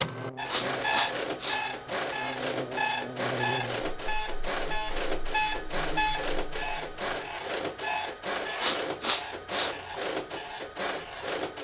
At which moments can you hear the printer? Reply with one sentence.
The printer can be heard from 0.0 to 11.5 s.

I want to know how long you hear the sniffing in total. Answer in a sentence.
The sniffing can be heard for 3 seconds in total.